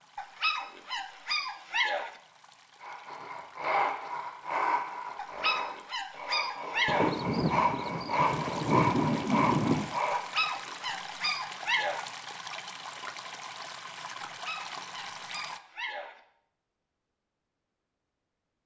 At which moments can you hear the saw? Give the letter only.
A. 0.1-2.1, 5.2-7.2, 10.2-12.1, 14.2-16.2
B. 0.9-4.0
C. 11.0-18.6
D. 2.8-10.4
D.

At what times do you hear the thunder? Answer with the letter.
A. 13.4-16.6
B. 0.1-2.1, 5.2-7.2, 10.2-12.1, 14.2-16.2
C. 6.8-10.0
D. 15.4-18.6
C.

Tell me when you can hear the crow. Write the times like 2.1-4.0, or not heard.
not heard.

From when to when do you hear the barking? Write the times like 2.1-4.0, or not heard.
0.1-2.1, 5.2-7.2, 10.2-12.1, 14.2-16.2.